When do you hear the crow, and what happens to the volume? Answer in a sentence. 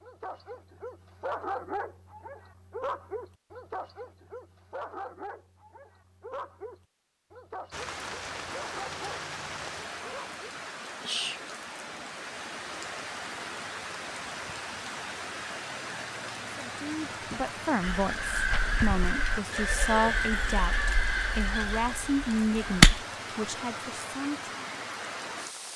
You can hear the crow from 17.8 to 23.1 s, getting quieter.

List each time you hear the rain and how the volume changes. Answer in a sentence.
The rain can be heard from 7.7 to 25.7 s, at a steady volume.